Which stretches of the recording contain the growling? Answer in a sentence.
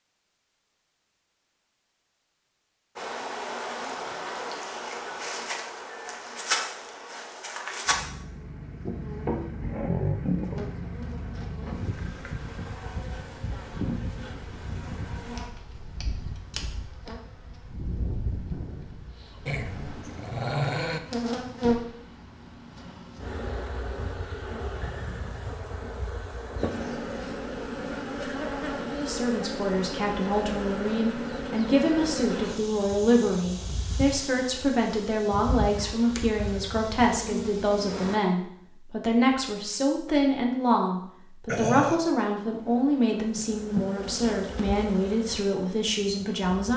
The growling can be heard from 9.6 to 10.7 s, from 19.4 to 21.0 s and from 41.5 to 42.1 s.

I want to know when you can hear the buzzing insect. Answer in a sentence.
The buzzing insect can be heard from 3.0 to 38.2 s and from 42.4 to 46.7 s.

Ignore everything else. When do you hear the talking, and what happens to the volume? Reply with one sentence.
The talking can be heard from 28.9 to 46.7 s, at a steady volume.